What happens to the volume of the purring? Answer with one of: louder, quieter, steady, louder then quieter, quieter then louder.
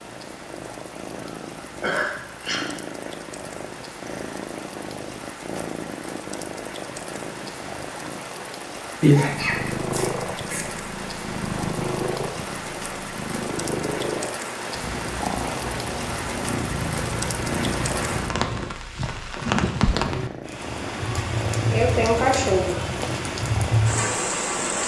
louder then quieter.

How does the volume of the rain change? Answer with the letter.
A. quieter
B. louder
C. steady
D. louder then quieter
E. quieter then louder
B.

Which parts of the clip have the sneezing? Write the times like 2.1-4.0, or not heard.
1.4-2.7, 9.0-10.7, 21.2-23.2.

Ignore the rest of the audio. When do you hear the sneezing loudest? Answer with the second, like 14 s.
22 s.